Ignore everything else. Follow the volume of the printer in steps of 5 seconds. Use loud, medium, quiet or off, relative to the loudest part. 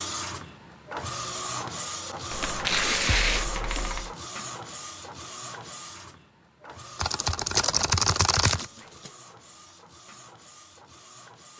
loud, medium, quiet.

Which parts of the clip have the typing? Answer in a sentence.
You can hear the typing from 2.3 to 4.2 s and from 7.0 to 8.7 s.